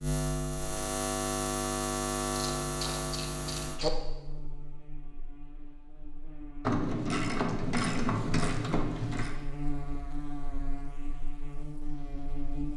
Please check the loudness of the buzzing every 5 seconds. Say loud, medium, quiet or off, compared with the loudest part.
loud, medium, medium.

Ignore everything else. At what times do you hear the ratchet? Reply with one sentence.
The ratchet can be heard from 2.4 to 3.9 s and from 6.6 to 9.3 s.